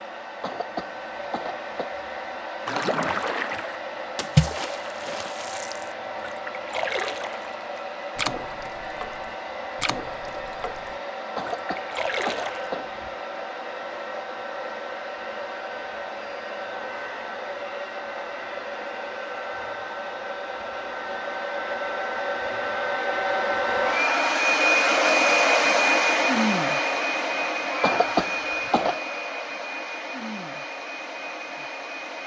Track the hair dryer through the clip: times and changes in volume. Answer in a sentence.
You can hear the hair dryer from 0.0 to 32.2 s, getting louder.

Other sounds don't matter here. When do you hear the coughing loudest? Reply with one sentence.
The volume of the coughing peaks at 28 seconds.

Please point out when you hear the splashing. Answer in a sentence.
You can hear the splashing from 2.6 to 12.7 s.